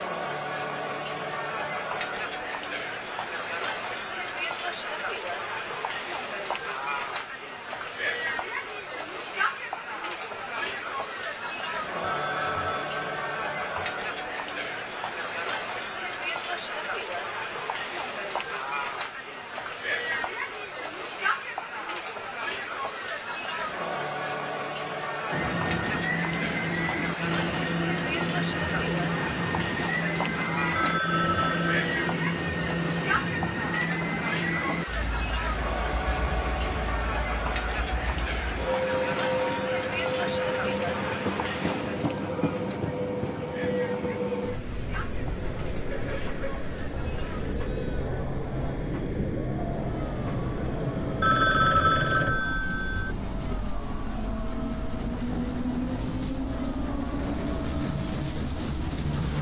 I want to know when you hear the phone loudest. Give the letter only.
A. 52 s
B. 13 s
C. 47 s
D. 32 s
A.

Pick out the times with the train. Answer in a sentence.
You can hear the train from 25.3 to 59.3 s.